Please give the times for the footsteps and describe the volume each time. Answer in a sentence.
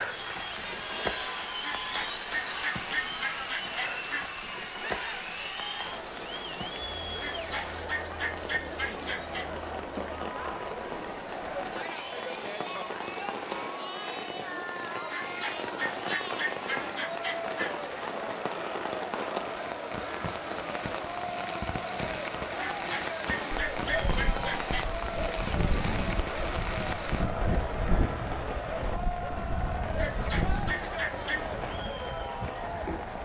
The footsteps can't be heard in this clip.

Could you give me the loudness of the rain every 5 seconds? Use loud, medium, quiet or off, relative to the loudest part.
loud, medium, loud, loud, loud, loud, loud.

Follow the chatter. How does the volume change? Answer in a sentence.
The loudness of the chatter stays about the same.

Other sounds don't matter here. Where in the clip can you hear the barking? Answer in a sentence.
The barking can be heard from 23.5 to 30.8 s.